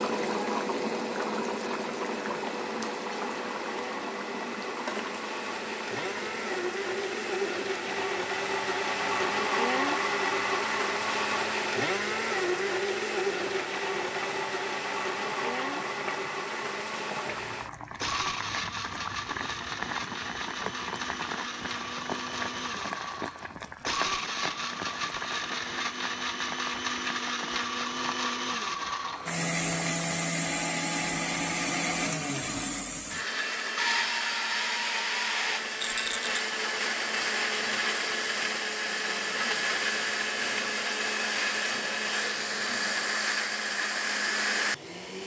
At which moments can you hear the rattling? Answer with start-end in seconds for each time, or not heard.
35.8-36.4.